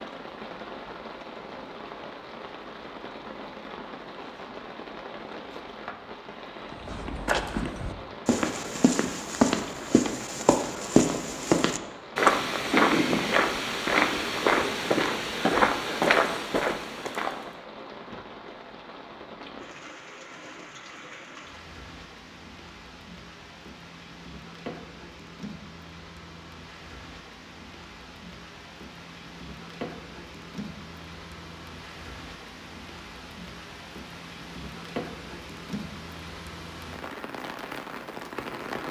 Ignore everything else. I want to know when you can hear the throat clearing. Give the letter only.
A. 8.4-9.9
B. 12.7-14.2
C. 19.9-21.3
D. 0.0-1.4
B.